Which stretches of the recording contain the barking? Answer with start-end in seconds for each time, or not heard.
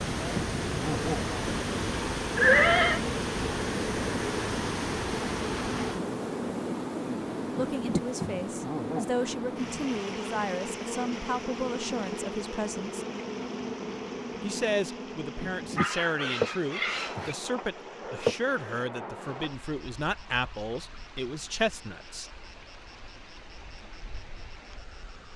15.8-17.4.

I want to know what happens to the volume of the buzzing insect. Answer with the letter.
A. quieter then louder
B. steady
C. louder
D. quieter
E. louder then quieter
D.